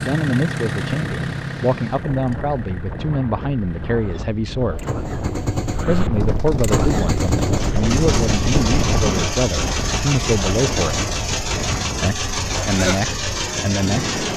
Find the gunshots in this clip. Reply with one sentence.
The gunshots can be heard from 5.9 to 9.2 s.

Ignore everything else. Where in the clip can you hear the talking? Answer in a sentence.
The talking can be heard from 0.0 to 4.8 s, from 5.8 to 11.1 s and from 12.0 to 14.2 s.